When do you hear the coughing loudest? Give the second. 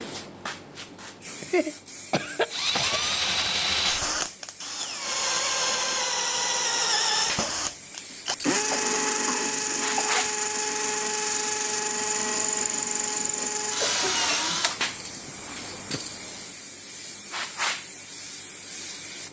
2 s.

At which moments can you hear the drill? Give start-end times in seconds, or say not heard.
2.5-16.4.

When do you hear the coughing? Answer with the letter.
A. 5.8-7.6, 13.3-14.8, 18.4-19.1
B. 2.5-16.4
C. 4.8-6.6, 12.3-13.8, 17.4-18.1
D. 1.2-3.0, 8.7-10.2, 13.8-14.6
D.